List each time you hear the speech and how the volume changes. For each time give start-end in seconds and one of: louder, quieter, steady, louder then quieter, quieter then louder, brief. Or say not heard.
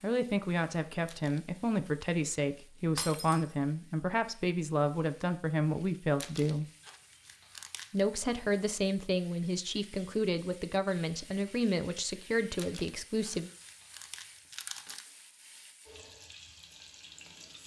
0.0-6.7 steady
7.9-13.5 steady.